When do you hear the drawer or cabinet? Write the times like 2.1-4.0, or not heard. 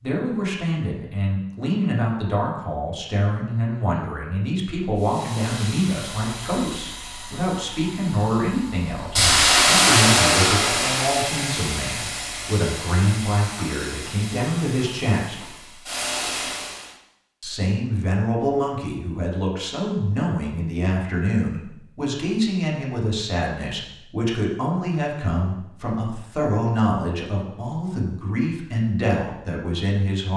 not heard.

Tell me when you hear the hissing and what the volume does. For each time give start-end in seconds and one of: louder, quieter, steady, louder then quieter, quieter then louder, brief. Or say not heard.
5.0-16.9 louder then quieter.